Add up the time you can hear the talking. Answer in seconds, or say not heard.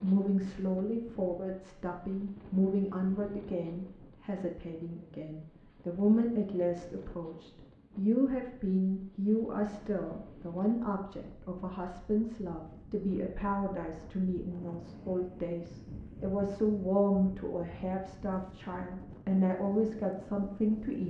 21 s.